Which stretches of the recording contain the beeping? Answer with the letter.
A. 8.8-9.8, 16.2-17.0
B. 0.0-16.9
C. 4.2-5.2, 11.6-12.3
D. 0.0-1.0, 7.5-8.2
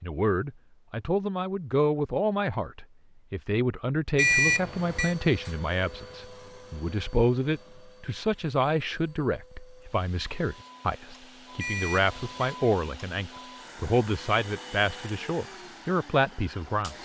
C.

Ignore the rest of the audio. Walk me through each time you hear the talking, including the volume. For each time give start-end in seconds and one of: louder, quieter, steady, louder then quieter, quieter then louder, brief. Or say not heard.
0.0-16.9 steady.